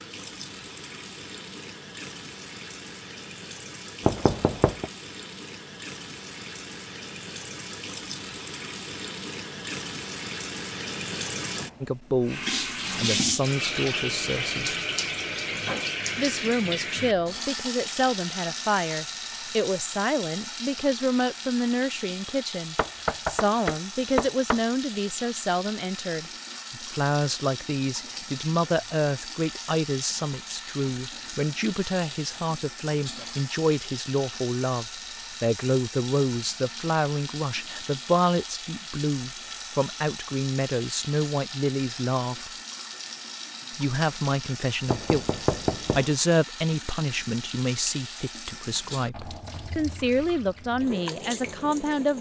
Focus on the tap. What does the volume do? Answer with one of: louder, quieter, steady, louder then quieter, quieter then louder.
louder then quieter.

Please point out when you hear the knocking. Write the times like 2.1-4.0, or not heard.
4.0-4.8, 22.8-24.6, 44.9-46.0.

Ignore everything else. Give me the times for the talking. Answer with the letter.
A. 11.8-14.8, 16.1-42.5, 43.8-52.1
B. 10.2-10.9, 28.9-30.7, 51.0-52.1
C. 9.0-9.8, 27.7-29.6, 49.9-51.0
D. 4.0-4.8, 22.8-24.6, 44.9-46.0
A.